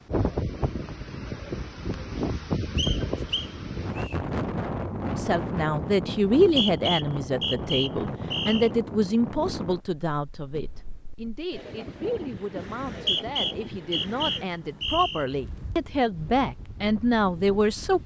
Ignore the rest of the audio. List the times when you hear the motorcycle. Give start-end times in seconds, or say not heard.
not heard.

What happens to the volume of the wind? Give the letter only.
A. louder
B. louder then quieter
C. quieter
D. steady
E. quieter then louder
C.